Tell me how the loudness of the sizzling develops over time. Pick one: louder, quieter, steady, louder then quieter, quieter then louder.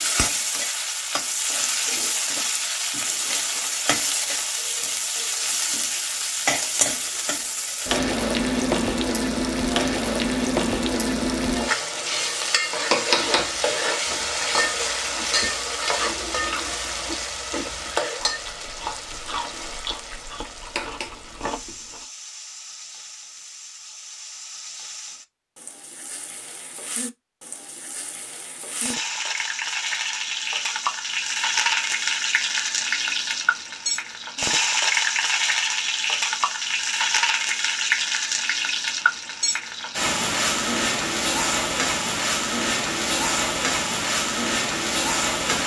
quieter then louder.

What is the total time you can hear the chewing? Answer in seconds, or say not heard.
9 s.